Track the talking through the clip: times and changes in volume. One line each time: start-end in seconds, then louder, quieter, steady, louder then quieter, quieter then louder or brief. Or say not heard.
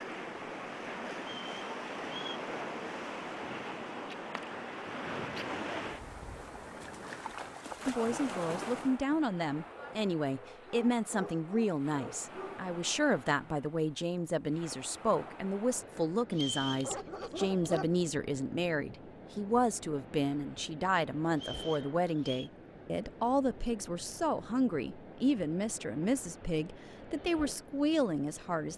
7.8-28.7 steady.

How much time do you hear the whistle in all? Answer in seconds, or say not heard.
3 s.